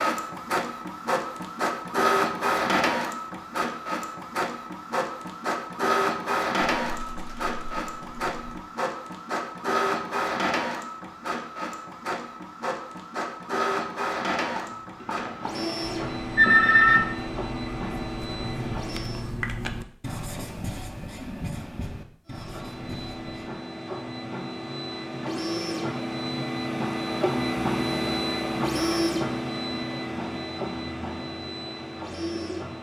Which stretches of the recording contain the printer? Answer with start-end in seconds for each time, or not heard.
0.0-19.3, 22.2-32.7.